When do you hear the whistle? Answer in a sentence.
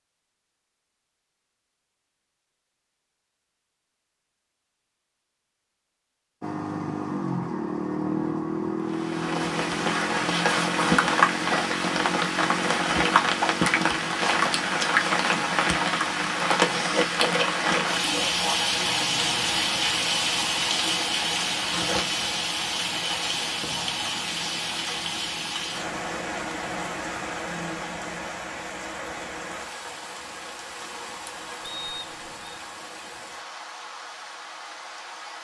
You can hear the whistle from 31.6 to 32.6 s.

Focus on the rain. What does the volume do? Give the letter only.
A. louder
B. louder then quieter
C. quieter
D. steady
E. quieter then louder
C.